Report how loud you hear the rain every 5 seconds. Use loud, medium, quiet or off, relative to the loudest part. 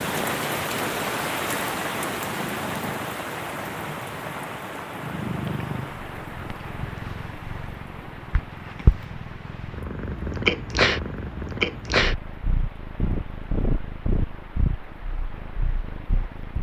loud, medium, quiet, quiet.